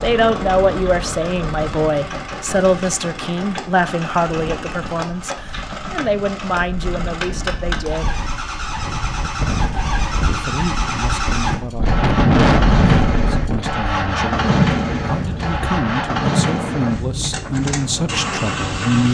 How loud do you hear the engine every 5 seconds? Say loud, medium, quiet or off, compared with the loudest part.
medium, medium, loud, loud.